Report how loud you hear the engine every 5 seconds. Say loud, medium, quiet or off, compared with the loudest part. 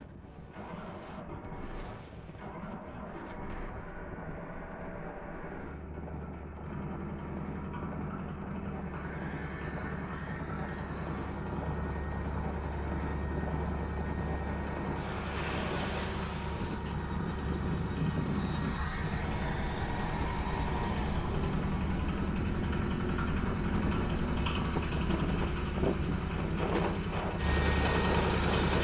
quiet, medium, medium, medium, loud, loud.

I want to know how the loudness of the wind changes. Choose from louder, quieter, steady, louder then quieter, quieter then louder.
louder.